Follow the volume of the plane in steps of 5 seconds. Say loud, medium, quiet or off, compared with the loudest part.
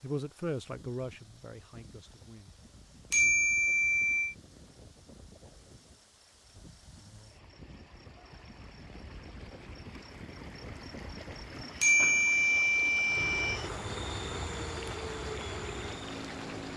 off, off, loud, loud.